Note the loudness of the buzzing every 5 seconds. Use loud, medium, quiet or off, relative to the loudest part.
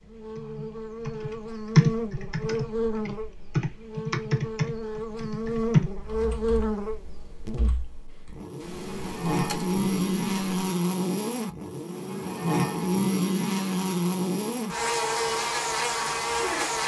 medium, loud, loud, loud.